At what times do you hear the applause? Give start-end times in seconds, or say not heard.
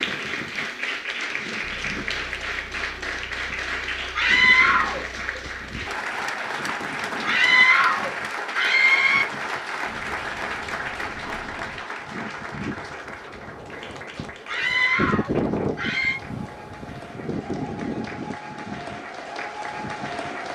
0.0-20.5.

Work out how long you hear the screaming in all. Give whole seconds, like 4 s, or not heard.
5 s.